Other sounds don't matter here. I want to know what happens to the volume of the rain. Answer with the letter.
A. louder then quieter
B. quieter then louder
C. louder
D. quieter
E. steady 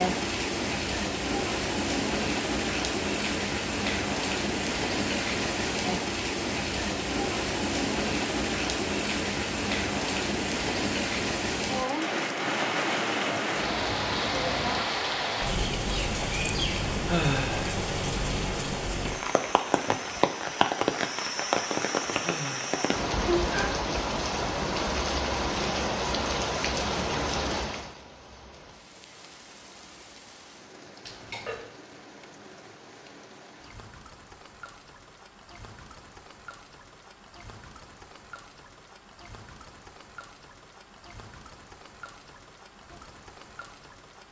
D.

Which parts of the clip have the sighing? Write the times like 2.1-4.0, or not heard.
17.1-17.8, 22.2-22.9.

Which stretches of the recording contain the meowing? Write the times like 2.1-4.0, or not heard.
31.1-31.7.